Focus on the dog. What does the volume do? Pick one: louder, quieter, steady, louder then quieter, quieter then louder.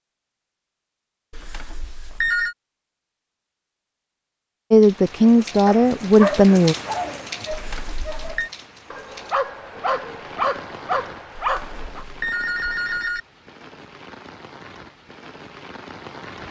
quieter then louder.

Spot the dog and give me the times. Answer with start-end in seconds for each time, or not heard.
5.3-12.1.